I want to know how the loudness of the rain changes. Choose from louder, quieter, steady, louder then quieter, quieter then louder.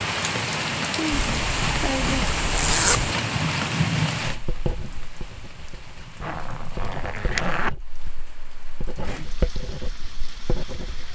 quieter.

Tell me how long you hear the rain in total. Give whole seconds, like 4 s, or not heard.
11 s.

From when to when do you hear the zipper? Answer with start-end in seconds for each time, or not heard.
1.1-3.1, 6.2-7.7.